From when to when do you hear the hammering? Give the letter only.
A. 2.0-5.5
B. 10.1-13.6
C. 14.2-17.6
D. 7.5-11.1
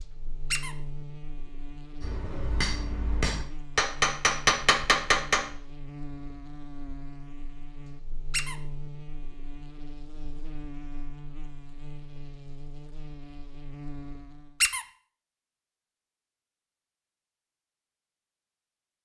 A.